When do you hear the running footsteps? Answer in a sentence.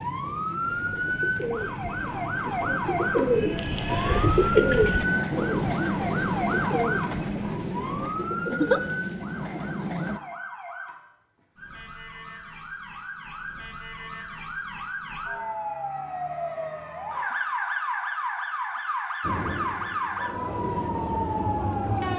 You can't hear the running footsteps here.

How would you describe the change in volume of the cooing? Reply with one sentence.
The volume of the cooing goes up, then down.